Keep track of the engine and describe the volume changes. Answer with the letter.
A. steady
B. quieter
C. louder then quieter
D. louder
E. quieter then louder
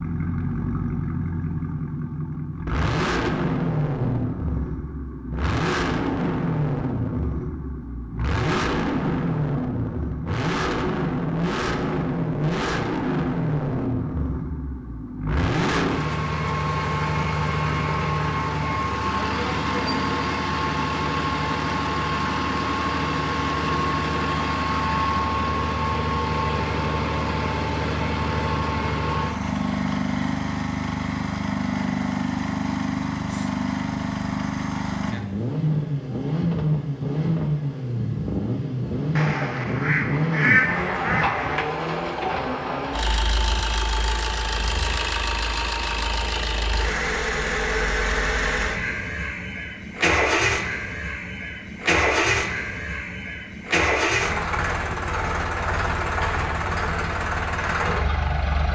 A.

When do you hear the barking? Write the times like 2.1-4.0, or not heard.
not heard.